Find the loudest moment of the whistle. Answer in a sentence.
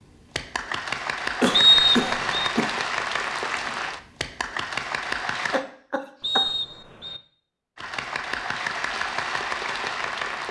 The volume of the whistle peaks at 2 seconds.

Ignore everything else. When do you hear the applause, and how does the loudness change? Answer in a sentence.
You can hear the applause from 0.0 to 5.7 s, at a steady volume; and briefly from 7.8 to 10.4 s.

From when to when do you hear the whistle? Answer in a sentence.
The whistle can be heard from 1.5 to 2.5 s and from 6.2 to 7.2 s.